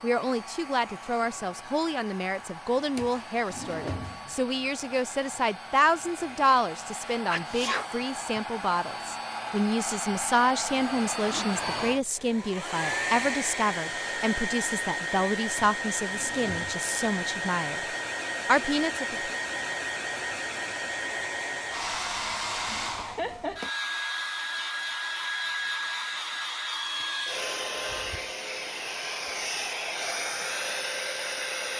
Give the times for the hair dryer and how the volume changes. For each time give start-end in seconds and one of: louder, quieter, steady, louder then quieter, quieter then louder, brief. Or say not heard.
0.0-31.7 louder.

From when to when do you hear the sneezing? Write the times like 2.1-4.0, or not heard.
7.0-8.4.